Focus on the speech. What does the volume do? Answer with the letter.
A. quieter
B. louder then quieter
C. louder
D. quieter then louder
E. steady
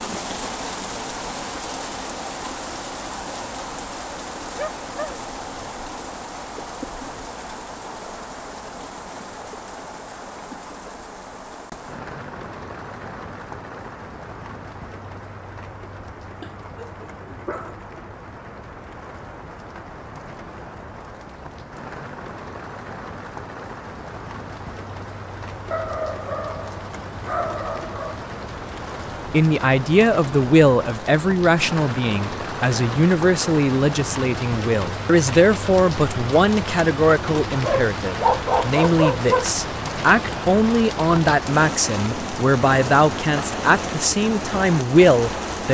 E.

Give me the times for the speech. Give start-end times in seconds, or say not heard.
29.3-45.6.